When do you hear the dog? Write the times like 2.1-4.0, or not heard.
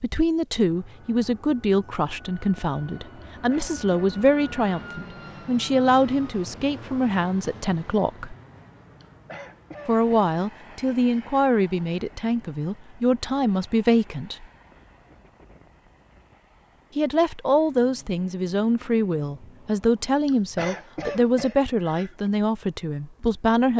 not heard.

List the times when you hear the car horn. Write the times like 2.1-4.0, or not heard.
not heard.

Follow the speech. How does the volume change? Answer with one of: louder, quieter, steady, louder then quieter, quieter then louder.
steady.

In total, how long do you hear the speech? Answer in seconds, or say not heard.
20 s.